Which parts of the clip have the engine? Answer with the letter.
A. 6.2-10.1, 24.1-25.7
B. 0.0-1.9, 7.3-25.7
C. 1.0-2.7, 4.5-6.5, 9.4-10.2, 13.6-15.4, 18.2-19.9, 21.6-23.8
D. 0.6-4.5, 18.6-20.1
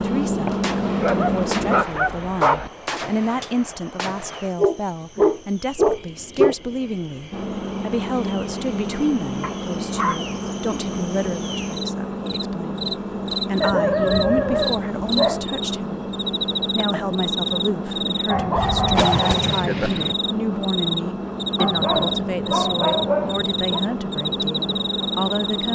B.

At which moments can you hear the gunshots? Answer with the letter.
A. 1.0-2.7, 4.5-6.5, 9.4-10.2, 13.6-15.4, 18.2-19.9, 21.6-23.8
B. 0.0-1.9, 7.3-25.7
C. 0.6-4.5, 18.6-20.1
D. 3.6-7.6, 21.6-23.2
C.